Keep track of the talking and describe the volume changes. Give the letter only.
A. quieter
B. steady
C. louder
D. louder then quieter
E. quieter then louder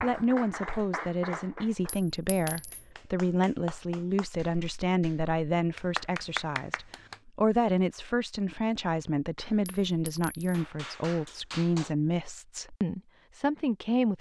B.